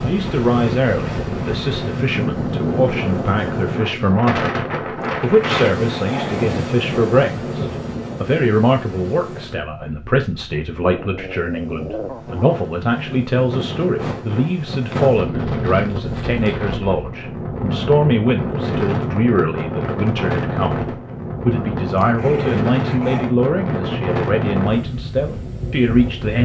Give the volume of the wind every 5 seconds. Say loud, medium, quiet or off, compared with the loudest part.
loud, loud, medium, loud, loud, medium.